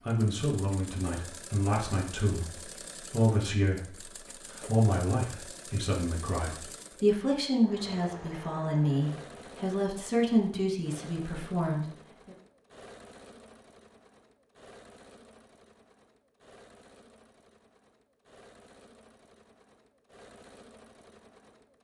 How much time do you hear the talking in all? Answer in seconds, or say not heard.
12 s.